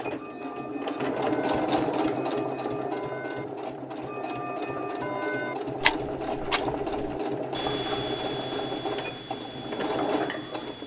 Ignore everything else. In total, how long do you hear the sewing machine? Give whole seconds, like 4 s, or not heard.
11 s.